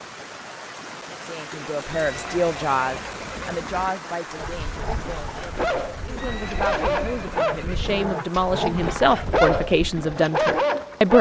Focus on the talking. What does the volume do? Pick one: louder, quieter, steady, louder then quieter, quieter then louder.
quieter then louder.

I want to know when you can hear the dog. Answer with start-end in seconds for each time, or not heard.
4.3-11.1.